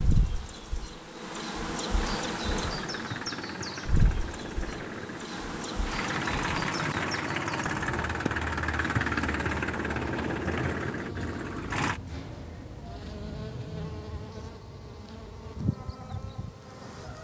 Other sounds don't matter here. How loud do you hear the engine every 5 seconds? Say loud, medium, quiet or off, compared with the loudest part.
medium, loud, loud, off.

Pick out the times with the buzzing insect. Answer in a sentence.
You can hear the buzzing insect from 0.0 to 17.1 s.